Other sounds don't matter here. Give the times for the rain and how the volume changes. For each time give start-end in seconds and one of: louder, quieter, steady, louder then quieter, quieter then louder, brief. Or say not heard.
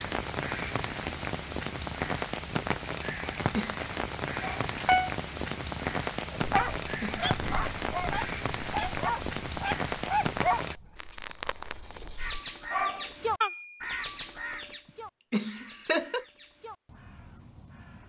0.0-10.8 steady.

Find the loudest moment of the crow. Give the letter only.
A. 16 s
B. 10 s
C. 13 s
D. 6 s
C.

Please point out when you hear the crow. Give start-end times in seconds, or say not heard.
12.2-18.0.